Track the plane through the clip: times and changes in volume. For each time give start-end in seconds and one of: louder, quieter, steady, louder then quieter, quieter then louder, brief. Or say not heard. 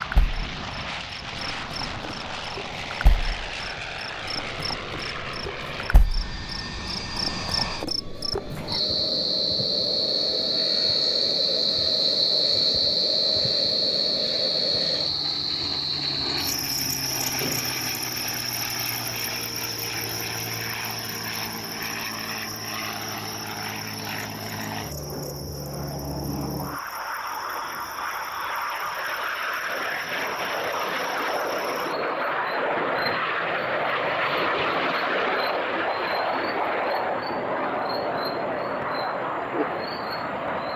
0.0-40.7 louder.